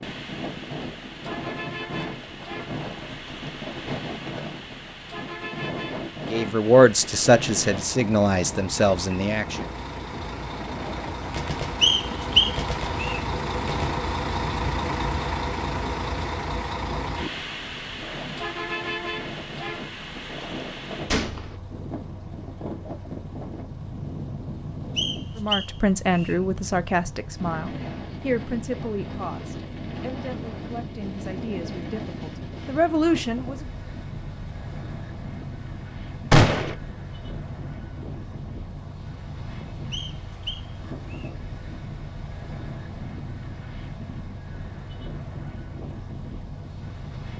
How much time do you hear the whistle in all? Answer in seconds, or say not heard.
4 s.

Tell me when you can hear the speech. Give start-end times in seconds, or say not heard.
6.3-9.6, 25.4-33.6.